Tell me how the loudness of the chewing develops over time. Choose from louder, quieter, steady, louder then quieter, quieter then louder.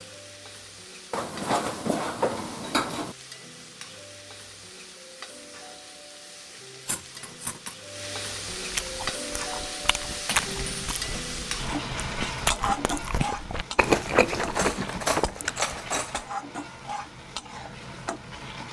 louder.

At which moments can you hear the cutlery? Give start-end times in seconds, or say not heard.
1.1-3.1, 6.8-7.8, 10.2-10.9, 14.4-16.3.